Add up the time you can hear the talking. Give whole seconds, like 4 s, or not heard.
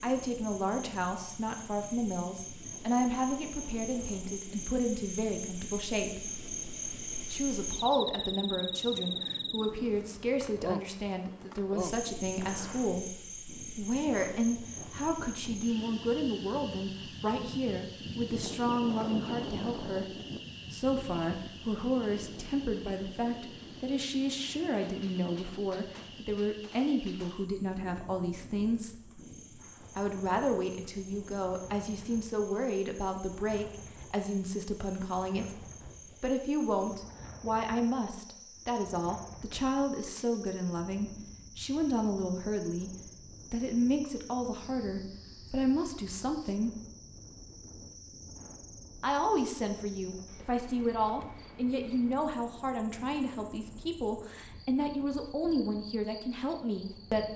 52 s.